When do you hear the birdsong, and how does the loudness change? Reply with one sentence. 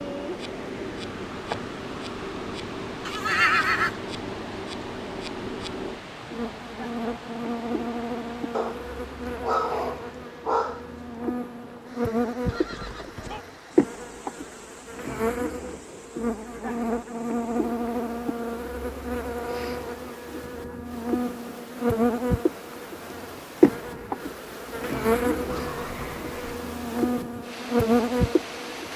You can't hear the birdsong here.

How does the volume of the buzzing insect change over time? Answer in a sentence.
The loudness of the buzzing insect goes up.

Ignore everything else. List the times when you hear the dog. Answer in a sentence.
You can hear the dog from 8.5 to 11.3 s.